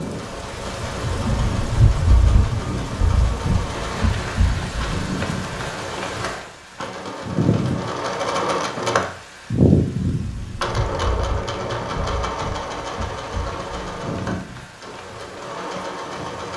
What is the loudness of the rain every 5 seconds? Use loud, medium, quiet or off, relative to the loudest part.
loud, medium, medium, quiet.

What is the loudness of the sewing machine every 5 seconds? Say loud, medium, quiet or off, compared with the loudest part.
medium, loud, medium, medium.